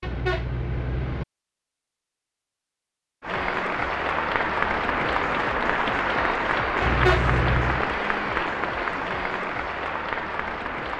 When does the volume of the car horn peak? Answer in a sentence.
The loudest moment of the car horn is at 7 seconds.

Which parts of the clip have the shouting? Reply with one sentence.
You can't hear the shouting here.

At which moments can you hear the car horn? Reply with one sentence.
The car horn can be heard from 0.0 to 1.2 s and from 6.8 to 7.8 s.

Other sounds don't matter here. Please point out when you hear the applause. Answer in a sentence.
The applause can be heard from 3.2 to 10.9 s.